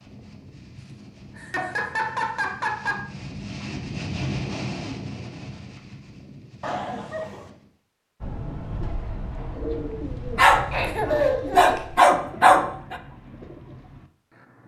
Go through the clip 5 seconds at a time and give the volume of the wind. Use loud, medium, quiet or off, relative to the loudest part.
loud, medium, off.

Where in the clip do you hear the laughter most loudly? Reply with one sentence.
The volume of the laughter peaks at 11 seconds.